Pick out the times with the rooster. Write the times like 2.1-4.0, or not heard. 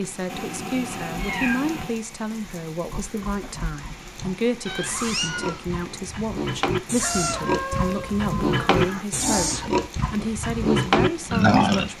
7.0-8.8.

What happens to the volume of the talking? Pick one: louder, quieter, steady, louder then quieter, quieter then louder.
steady.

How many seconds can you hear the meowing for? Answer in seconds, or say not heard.
4 s.